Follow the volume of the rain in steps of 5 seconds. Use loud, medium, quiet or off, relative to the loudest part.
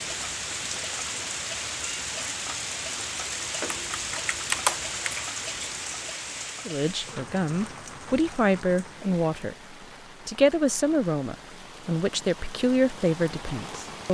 loud, medium, medium.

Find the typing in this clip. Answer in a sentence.
The typing can be heard from 3.6 to 5.2 s.